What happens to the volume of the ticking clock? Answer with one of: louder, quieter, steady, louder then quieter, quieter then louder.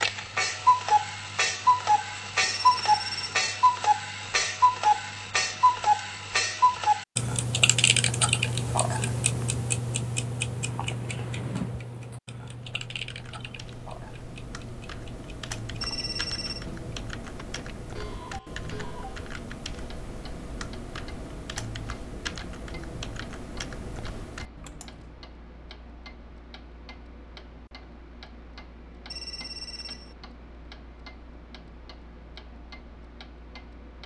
quieter.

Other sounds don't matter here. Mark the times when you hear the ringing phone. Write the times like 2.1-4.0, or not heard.
2.4-3.5, 15.8-16.6, 29.1-30.1.